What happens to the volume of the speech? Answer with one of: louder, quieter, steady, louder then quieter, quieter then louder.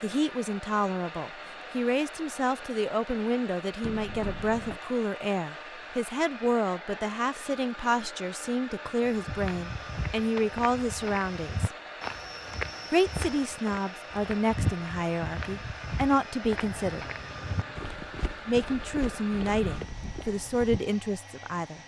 steady.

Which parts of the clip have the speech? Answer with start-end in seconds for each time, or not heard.
0.0-11.8, 12.9-17.1, 17.9-21.8.